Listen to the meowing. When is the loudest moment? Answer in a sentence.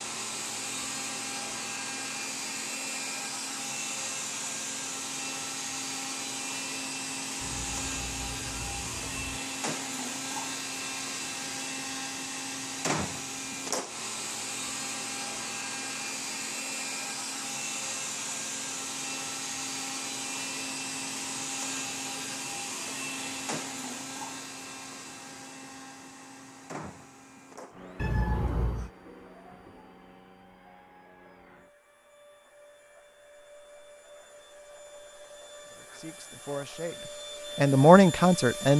The loudest moment of the meowing is at 28 seconds.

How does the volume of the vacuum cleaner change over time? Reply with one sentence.
The volume of the vacuum cleaner goes down.